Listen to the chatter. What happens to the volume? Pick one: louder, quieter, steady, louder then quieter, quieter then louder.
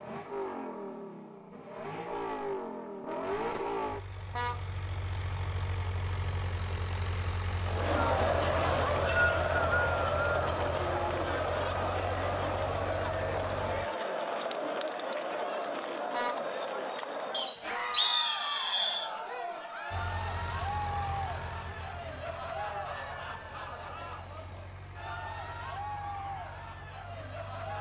quieter.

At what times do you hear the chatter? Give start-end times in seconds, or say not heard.
7.5-27.7.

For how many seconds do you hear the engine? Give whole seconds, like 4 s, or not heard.
22 s.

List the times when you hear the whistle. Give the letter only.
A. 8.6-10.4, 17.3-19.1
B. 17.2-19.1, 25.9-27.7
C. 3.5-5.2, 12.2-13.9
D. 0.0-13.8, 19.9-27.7
A.